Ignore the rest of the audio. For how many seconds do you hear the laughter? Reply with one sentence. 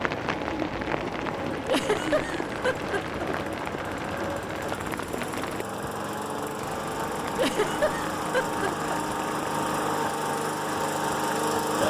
The laughter can be heard for 3 seconds in total.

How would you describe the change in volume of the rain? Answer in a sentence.
The loudness of the rain goes down.